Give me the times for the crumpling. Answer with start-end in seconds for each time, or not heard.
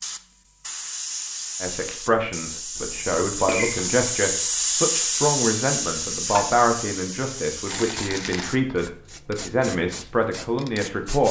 2.8-4.0, 7.7-8.5.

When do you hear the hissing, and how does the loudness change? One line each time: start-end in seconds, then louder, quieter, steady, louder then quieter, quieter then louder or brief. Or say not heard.
0.0-11.2 louder then quieter.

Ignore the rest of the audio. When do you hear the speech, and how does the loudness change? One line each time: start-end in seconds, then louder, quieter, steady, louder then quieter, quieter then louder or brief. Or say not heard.
1.6-11.2 steady.